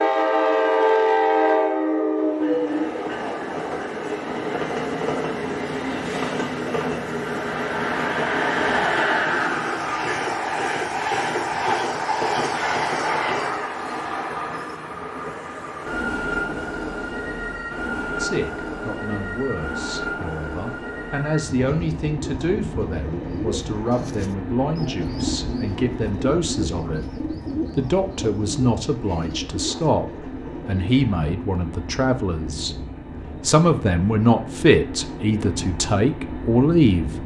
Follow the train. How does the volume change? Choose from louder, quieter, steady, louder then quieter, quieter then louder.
quieter.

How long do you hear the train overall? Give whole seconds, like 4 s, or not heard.
37 s.